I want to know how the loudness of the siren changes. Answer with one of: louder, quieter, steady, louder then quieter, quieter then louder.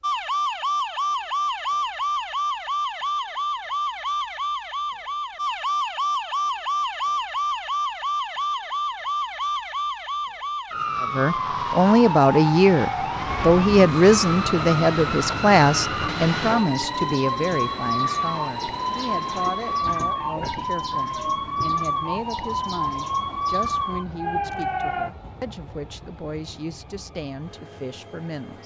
steady.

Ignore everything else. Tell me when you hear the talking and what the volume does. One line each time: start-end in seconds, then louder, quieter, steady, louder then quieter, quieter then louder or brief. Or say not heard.
11.0-28.6 quieter.